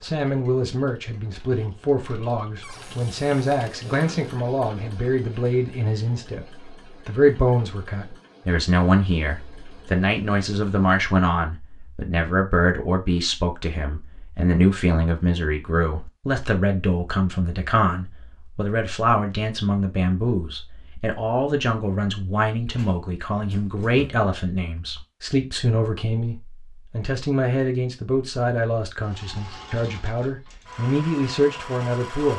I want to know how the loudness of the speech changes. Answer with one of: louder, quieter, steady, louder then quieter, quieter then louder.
steady.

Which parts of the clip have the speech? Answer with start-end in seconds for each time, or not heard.
0.0-6.5, 7.0-32.3.